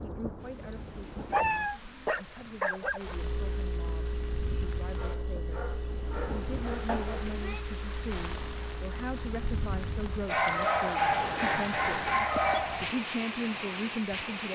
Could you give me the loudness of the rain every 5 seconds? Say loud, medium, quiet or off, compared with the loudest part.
medium, medium, loud.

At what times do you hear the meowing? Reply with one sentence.
You can hear the meowing from 0.6 to 1.8 s, from 6.8 to 7.6 s and from 12.3 to 12.8 s.